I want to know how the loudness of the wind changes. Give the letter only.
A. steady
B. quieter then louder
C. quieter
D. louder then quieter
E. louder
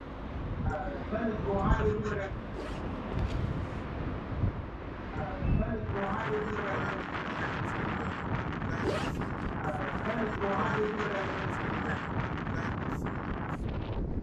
A.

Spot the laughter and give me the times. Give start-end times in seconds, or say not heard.
0.7-2.4, 5.1-7.7, 9.6-12.1.